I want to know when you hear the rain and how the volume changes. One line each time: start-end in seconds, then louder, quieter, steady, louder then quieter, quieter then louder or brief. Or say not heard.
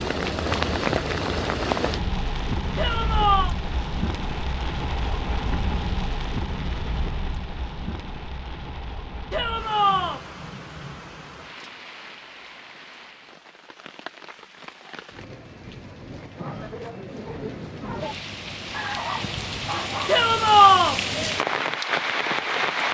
0.0-22.9 quieter then louder.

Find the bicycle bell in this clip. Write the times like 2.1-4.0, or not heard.
not heard.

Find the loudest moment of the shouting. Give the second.
21 s.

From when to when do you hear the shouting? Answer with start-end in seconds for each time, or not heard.
2.8-3.5, 9.3-10.2, 20.1-21.0.